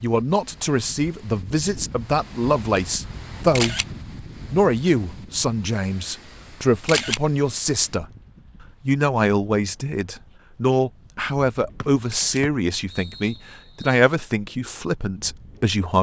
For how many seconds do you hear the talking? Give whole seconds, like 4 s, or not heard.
14 s.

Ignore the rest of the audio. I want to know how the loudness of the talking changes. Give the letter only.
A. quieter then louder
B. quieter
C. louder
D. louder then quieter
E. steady
E.